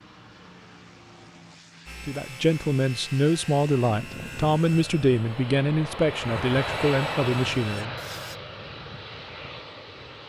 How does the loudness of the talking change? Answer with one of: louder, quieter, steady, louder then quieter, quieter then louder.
steady.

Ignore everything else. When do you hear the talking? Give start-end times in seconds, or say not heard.
2.0-8.0.